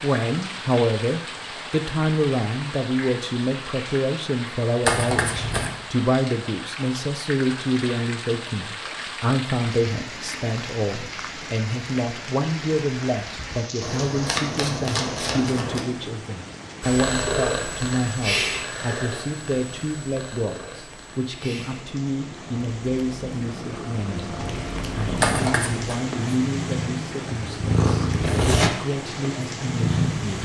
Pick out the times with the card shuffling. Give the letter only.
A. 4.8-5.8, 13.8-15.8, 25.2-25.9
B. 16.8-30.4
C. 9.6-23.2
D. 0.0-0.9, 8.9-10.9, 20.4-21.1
A.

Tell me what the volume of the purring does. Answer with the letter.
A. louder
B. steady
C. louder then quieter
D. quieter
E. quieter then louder
E.